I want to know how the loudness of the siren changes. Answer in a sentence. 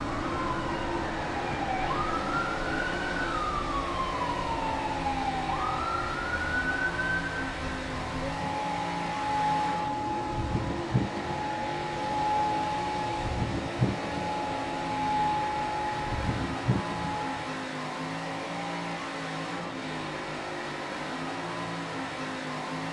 The volume of the siren stays about the same.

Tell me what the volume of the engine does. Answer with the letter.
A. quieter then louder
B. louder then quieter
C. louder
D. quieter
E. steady
E.